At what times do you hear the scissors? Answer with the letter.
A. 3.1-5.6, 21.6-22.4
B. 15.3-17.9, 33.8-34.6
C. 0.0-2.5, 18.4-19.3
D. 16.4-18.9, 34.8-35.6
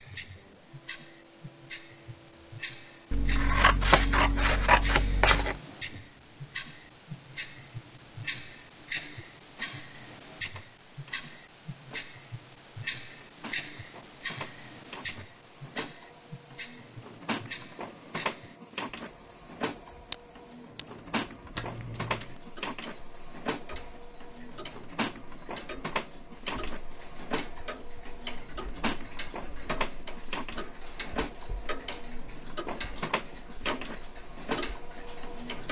A.